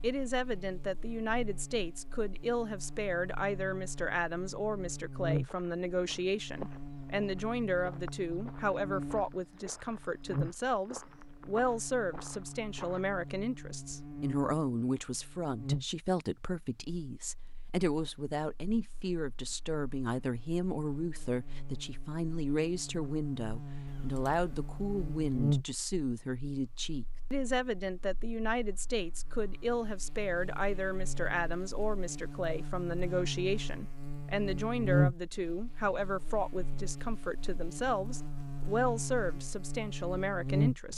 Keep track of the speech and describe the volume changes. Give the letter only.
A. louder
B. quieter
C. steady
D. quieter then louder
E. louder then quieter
C.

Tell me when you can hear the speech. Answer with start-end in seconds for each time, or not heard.
0.0-40.9.